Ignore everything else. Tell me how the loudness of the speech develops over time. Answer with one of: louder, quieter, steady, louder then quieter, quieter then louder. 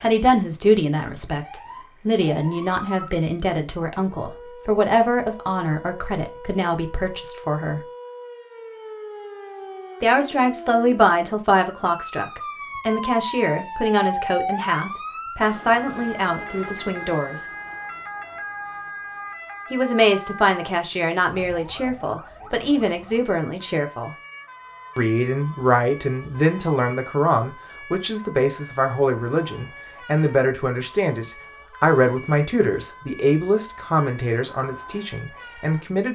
steady.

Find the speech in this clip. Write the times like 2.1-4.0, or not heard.
0.0-7.8, 10.0-17.4, 19.7-24.1, 24.9-36.0.